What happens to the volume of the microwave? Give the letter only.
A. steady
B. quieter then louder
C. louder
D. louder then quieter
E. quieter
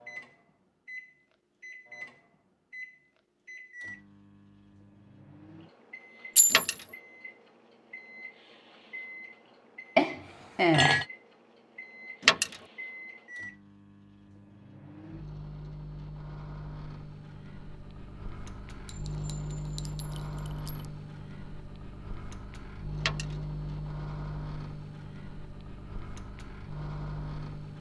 C.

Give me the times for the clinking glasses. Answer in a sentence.
The clinking glasses can be heard from 6.3 to 6.8 s, from 9.9 to 11.1 s and from 18.9 to 20.9 s.